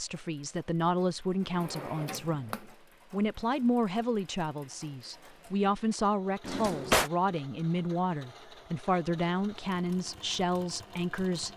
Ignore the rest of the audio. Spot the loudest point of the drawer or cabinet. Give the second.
7 s.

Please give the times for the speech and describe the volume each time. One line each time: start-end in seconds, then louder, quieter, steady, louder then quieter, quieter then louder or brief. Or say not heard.
0.0-11.5 steady.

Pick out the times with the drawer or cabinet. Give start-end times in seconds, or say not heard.
1.6-2.6, 6.5-7.1.